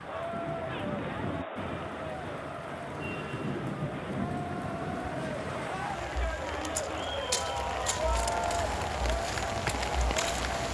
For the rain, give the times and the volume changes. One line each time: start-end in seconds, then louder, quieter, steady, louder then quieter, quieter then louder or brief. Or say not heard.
0.0-10.7 steady.